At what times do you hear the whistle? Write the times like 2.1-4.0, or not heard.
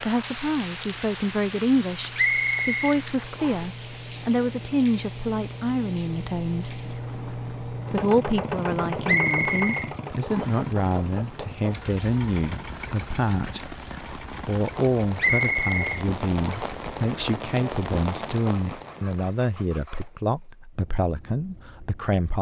2.1-3.6, 9.1-10.7, 15.2-16.8.